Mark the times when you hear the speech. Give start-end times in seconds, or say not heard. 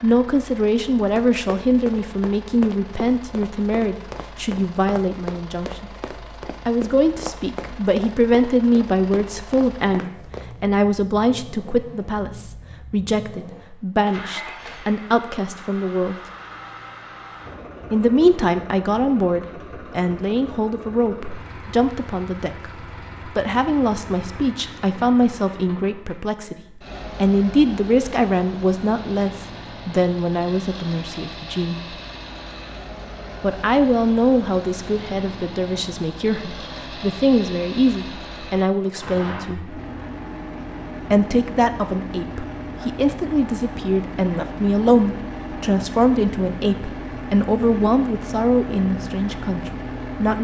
0.0-5.9, 6.7-16.1, 17.9-31.9, 33.4-39.8, 41.1-50.4.